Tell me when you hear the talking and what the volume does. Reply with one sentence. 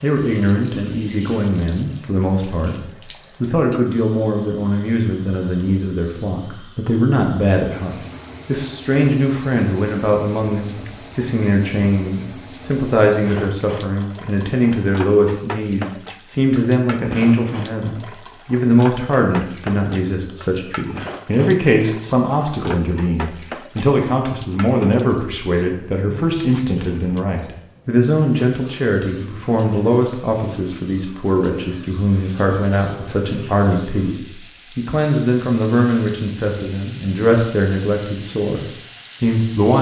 You can hear the talking from 0.0 to 39.7 s, at a steady volume.